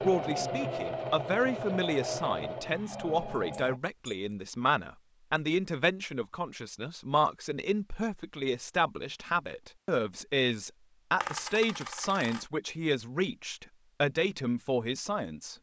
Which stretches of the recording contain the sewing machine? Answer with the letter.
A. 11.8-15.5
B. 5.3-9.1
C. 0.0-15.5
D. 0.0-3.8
D.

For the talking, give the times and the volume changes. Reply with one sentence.
You can hear the talking from 0.0 to 15.5 s, at a steady volume.